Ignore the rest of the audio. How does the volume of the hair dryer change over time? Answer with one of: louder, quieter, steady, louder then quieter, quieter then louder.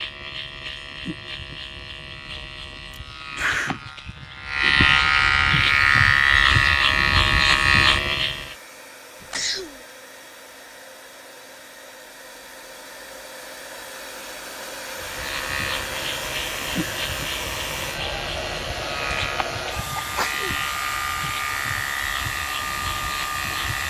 louder.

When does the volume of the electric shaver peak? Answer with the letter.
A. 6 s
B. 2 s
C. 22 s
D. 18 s
A.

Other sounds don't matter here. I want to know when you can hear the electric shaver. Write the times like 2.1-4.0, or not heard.
0.0-8.6, 14.9-23.8.